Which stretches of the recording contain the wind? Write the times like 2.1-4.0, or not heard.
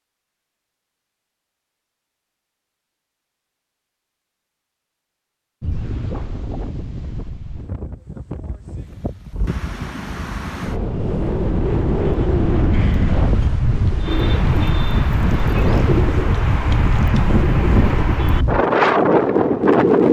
5.6-20.0.